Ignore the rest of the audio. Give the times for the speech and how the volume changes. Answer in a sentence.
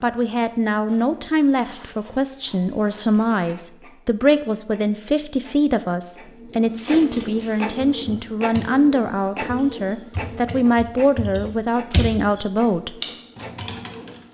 You can hear the speech from 0.0 to 12.9 s, at a steady volume.